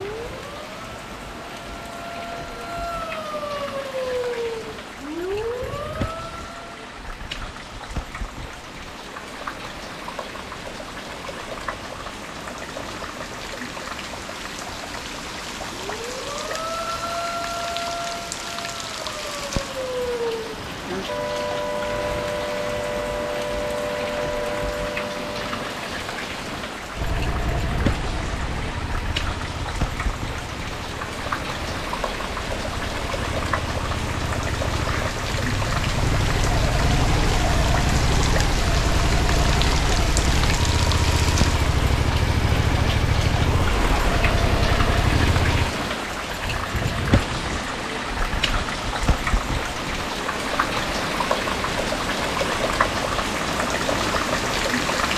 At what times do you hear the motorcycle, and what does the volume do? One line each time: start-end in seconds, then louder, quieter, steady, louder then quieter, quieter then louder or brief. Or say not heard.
26.9-45.7 louder.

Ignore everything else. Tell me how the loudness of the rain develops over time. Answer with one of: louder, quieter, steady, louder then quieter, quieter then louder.
louder.